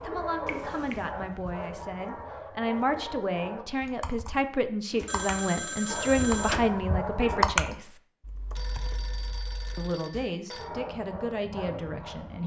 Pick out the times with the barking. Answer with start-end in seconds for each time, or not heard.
0.0-3.6, 5.8-7.5, 10.6-12.4.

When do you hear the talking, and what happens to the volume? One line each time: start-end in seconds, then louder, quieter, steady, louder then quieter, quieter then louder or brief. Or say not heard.
0.0-8.0 louder
9.8-12.4 brief.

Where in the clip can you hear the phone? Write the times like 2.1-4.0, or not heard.
0.5-1.1, 4.9-6.7, 8.6-10.7.